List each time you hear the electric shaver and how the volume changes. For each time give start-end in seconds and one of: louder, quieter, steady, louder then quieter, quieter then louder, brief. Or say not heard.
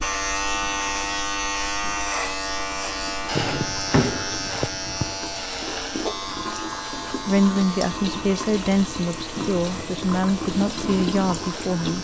0.0-11.9 quieter.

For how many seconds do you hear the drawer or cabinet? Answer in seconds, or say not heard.
2 s.